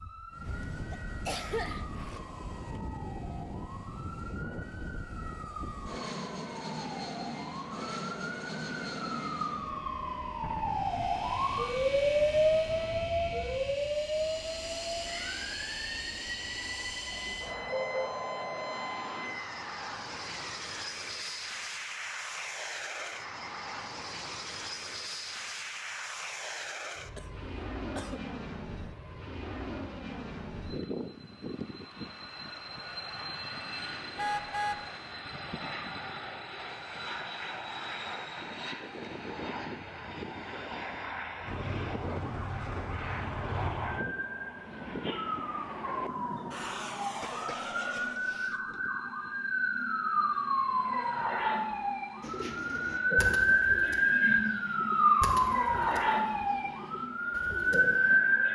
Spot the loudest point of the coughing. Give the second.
1 s.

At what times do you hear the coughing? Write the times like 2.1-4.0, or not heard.
0.5-2.2, 27.1-28.2, 47.2-48.8.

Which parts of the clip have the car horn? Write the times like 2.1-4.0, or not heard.
17.1-18.1, 34.1-34.9.